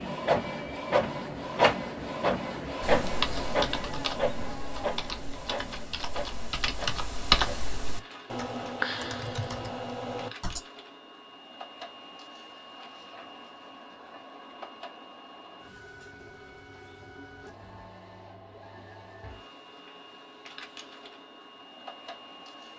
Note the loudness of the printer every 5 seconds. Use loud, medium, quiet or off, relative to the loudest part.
loud, quiet, quiet, quiet, quiet.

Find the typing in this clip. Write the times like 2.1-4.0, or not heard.
2.8-10.6.